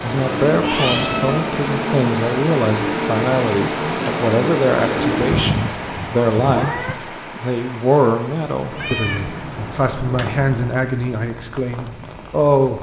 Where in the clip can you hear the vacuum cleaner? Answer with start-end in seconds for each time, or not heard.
0.0-5.7.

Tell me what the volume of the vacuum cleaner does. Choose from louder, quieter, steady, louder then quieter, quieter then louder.
steady.